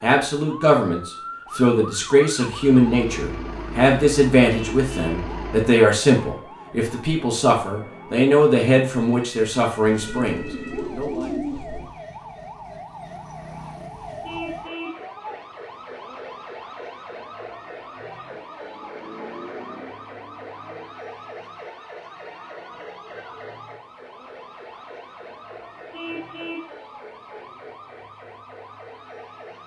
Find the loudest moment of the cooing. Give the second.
11 s.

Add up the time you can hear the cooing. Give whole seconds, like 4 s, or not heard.
2 s.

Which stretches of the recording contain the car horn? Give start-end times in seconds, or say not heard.
4.5-5.3, 14.2-15.1, 25.9-26.8.